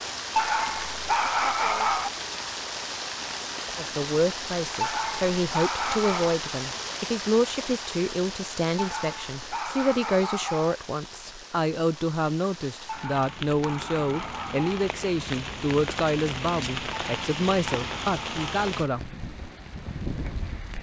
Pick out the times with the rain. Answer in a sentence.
You can hear the rain from 0.0 to 20.7 s.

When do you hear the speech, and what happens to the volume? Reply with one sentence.
The speech can be heard from 3.8 to 19.3 s, at a steady volume.